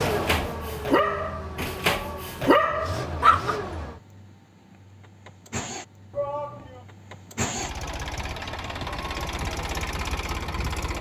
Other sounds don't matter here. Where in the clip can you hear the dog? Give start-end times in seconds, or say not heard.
0.0-3.6.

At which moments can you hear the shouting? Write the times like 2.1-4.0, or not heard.
1.9-2.3, 6.1-6.8.